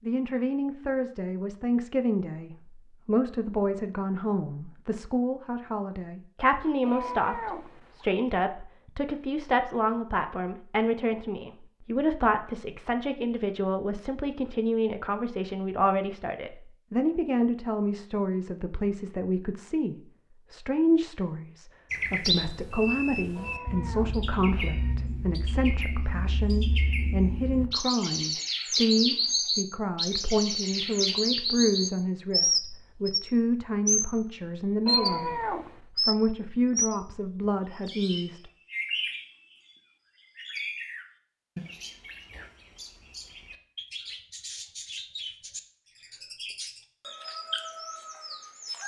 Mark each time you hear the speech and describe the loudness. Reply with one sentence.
The speech can be heard from 0.0 to 38.5 s, at a steady volume.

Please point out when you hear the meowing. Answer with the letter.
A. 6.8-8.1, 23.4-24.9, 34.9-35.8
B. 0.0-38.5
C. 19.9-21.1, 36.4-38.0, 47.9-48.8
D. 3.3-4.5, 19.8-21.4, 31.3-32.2
A.